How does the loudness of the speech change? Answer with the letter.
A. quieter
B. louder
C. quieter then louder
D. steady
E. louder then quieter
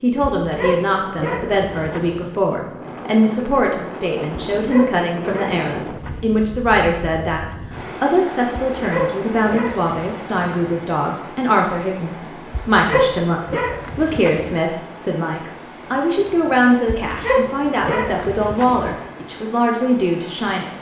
D.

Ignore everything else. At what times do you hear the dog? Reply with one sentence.
You can hear the dog from 0.3 to 2.3 s, from 4.5 to 6.4 s, from 8.7 to 10.0 s, from 12.5 to 14.6 s and from 16.9 to 19.0 s.